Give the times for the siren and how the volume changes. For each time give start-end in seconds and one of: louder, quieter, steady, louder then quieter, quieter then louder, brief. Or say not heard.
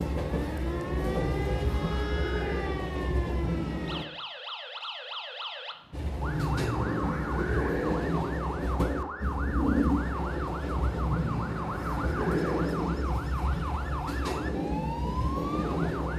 0.1-16.1 steady.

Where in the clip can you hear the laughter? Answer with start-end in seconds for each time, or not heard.
1.1-2.8, 6.2-8.1, 11.1-12.8.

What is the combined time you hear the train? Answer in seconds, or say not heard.
14 s.